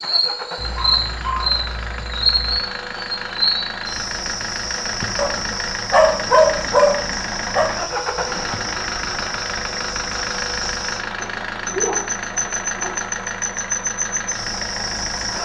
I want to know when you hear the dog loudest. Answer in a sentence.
The volume of the dog peaks at 6 seconds.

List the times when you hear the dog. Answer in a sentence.
The dog can be heard from 0.6 to 2.6 s, from 5.2 to 7.7 s and from 11.2 to 13.1 s.